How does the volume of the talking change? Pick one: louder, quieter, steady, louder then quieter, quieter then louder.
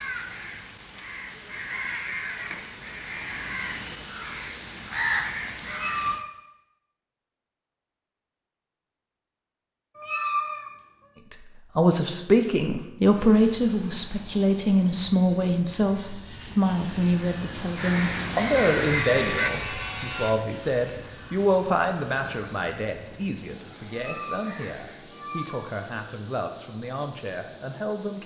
quieter.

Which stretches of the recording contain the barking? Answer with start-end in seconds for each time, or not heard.
not heard.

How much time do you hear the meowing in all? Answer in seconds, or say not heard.
3 s.